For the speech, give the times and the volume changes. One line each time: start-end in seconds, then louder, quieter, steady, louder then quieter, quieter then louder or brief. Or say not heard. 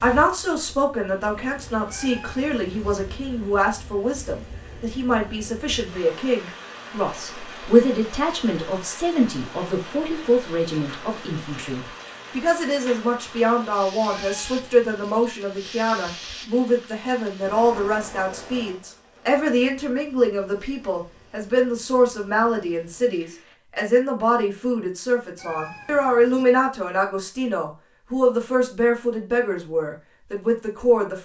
0.0-31.2 steady.